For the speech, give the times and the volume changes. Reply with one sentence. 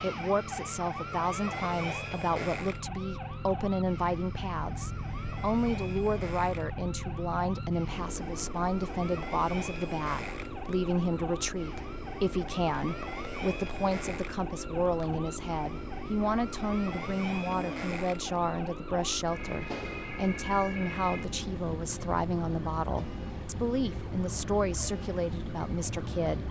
The speech can be heard from 0.0 to 26.4 s, at a steady volume.